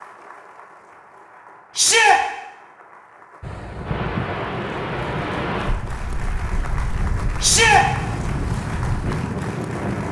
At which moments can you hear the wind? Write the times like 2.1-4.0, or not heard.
3.4-10.0.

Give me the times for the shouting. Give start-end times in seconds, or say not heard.
1.8-2.2, 7.4-7.8.